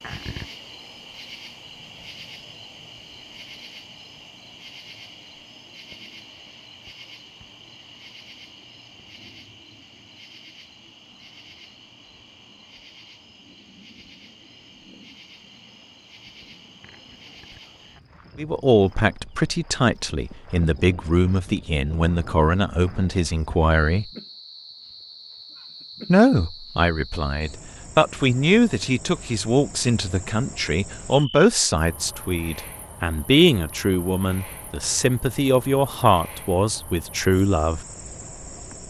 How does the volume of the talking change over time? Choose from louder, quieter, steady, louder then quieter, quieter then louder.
steady.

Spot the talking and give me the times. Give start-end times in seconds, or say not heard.
18.4-24.1, 26.1-37.8.